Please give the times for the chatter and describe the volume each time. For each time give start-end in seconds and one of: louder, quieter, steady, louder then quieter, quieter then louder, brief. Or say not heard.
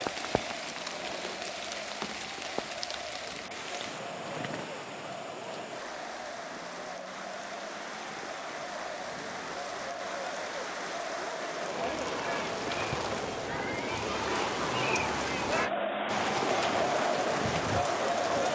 0.0-18.5 louder.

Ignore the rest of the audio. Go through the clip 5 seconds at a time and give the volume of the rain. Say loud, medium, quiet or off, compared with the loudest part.
medium, medium, loud, loud.